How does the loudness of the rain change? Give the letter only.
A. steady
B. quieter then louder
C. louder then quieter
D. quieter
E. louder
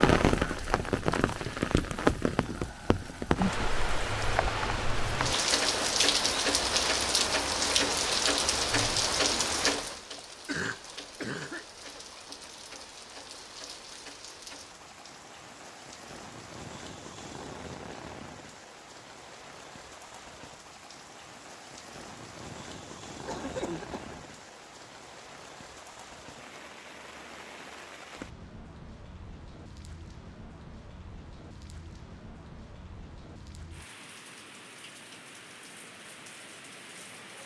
D.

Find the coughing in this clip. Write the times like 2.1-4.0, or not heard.
10.4-11.7, 23.2-24.2.